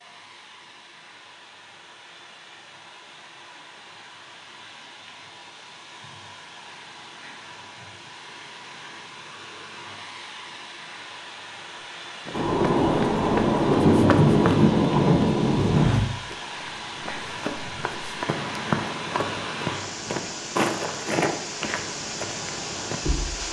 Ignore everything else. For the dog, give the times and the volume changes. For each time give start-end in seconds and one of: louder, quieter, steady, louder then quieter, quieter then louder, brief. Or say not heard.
not heard.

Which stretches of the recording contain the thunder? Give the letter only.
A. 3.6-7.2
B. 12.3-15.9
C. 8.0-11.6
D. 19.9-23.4
B.